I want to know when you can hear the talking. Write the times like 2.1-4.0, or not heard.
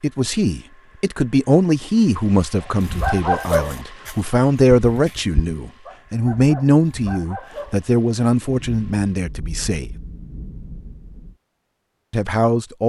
0.0-9.9, 12.1-12.8.